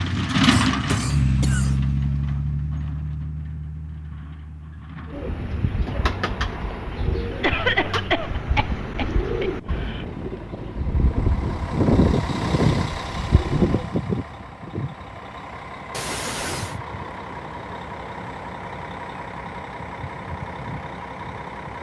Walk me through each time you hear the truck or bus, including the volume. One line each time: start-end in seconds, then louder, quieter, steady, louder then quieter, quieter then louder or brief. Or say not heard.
0.0-7.0 quieter
9.6-21.7 quieter.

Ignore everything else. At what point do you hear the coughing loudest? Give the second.
8 s.